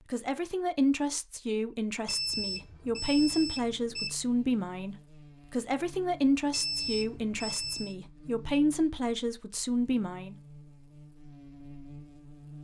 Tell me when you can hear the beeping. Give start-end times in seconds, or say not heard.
2.0-4.1, 6.5-8.0.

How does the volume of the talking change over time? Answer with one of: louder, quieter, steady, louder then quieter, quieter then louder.
steady.